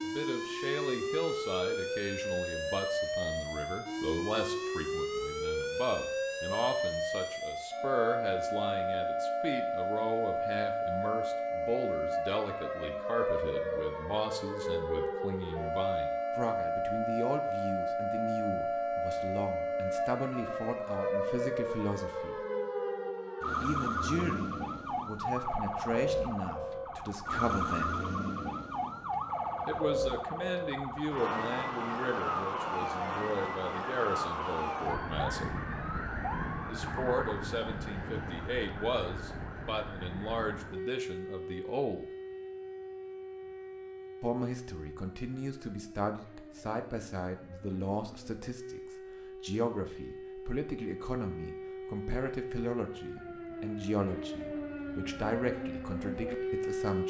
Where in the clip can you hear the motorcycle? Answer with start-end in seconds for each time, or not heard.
not heard.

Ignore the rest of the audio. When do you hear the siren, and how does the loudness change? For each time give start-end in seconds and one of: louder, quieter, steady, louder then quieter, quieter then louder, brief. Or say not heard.
0.0-57.0 quieter.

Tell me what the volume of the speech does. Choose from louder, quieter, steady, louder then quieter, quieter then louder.
steady.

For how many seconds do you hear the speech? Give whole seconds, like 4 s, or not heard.
51 s.